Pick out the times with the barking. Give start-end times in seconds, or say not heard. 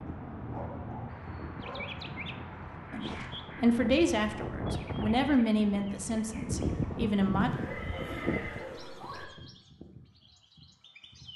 0.5-1.9, 7.6-9.3.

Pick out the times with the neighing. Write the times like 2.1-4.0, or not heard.
2.9-3.3, 7.3-9.2.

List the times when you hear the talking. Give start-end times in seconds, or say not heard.
2.9-7.5.